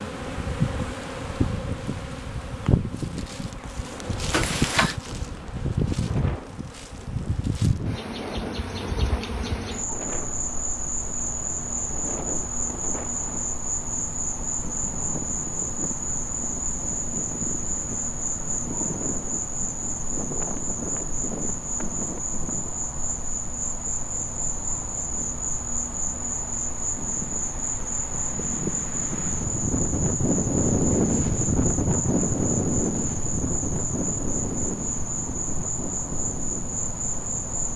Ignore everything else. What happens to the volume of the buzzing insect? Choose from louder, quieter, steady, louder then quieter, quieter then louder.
steady.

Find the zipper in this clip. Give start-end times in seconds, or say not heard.
4.3-5.0.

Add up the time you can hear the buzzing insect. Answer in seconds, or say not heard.
38 s.